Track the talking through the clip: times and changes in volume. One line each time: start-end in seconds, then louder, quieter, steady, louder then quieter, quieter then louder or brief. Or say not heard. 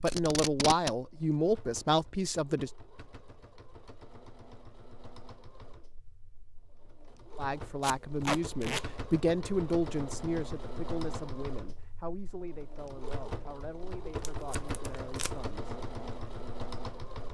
0.0-2.7 brief
7.3-15.8 quieter.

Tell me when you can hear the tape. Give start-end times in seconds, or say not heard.
0.1-0.9, 7.8-8.8, 14.0-15.5.